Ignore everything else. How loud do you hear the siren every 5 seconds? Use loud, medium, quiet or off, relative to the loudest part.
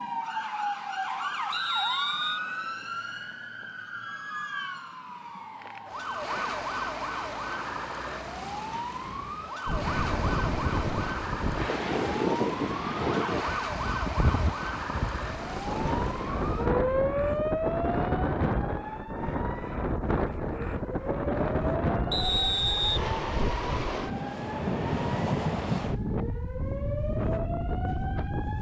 loud, loud, loud, loud, medium, medium.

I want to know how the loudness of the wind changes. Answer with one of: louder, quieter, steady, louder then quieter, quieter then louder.
steady.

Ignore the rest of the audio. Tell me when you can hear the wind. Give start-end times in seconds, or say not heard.
9.7-28.5.